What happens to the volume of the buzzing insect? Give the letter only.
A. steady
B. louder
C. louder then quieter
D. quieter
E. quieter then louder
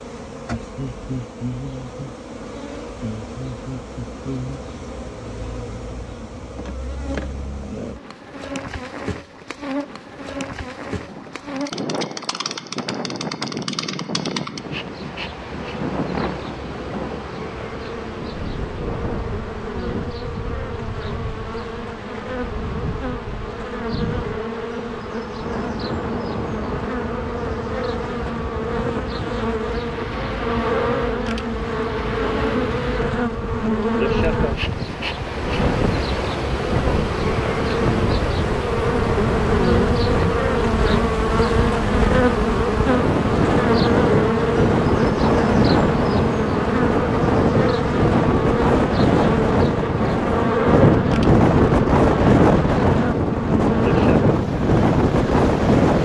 B.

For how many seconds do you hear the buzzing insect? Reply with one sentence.
You can hear the buzzing insect for 56 seconds altogether.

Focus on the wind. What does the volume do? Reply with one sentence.
The loudness of the wind goes up.